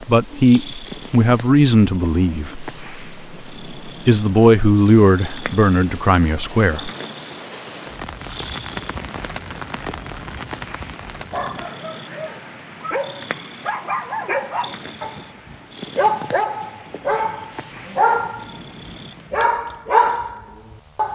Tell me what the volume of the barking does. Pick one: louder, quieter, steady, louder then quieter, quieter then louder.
louder.